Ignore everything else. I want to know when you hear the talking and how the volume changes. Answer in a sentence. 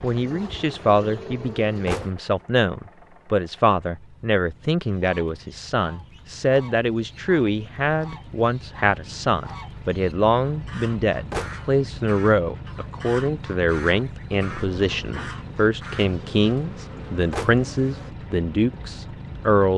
The talking can be heard from 0.0 to 19.7 s, at a steady volume.